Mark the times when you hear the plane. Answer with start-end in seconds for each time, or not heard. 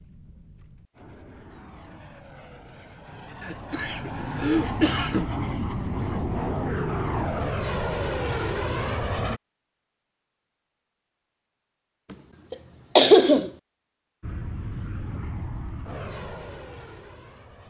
0.0-9.4, 14.2-17.6.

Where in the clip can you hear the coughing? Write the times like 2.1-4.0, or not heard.
3.4-5.3, 12.5-13.5.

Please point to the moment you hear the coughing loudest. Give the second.
13 s.